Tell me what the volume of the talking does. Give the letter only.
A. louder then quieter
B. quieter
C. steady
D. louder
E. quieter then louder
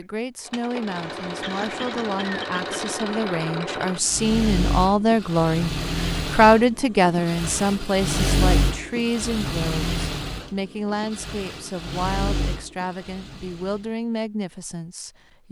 A.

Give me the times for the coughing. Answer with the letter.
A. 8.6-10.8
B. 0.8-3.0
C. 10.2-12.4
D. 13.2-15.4
B.